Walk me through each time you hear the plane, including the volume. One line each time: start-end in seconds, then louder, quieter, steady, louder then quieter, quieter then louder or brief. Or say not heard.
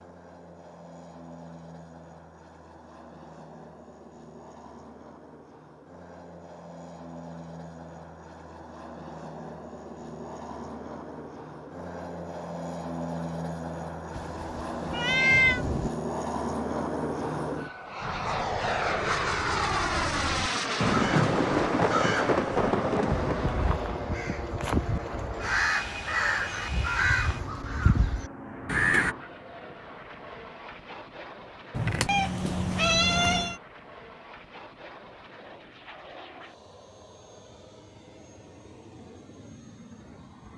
0.0-40.5 louder then quieter.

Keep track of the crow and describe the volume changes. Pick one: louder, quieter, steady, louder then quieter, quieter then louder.
louder.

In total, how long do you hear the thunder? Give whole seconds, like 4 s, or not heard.
5 s.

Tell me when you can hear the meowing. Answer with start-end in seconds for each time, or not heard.
14.9-15.7, 31.8-33.5.